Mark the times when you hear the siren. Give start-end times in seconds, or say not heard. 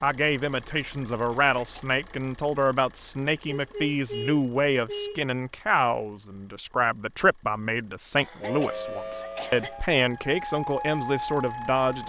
8.4-12.0.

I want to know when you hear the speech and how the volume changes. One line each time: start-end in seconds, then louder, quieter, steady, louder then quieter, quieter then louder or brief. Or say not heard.
0.0-12.0 steady.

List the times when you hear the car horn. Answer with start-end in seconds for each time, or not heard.
3.5-5.2.